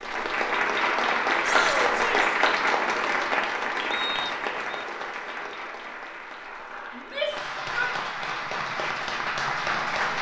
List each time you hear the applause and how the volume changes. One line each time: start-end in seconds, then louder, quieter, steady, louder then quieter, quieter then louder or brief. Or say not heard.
0.0-10.1 quieter then louder.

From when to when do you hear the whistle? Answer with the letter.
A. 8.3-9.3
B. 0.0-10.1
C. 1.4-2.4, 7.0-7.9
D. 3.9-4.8
D.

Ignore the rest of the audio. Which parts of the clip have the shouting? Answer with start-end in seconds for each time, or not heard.
1.4-2.4, 7.0-7.9.